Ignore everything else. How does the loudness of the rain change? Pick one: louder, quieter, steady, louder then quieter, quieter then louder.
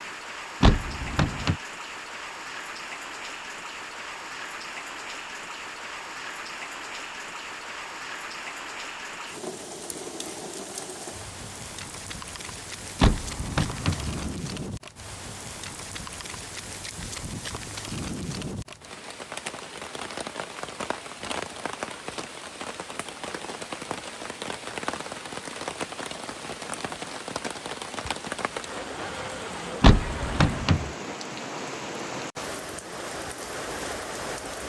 steady.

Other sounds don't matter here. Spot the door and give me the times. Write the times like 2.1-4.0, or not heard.
0.6-1.6, 13.0-14.3, 29.8-30.9.